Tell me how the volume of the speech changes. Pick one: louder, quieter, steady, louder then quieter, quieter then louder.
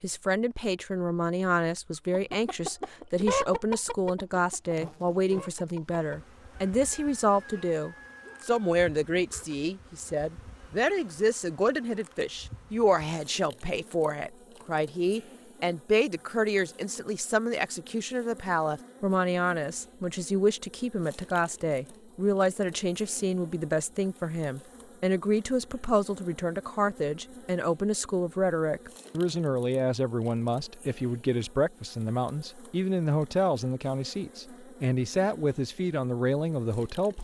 steady.